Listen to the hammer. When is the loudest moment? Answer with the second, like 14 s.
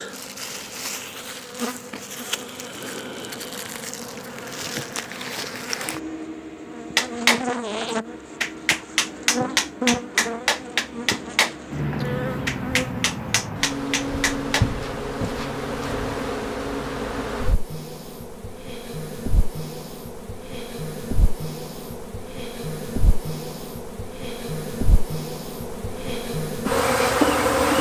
7 s.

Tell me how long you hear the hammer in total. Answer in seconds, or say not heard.
8 s.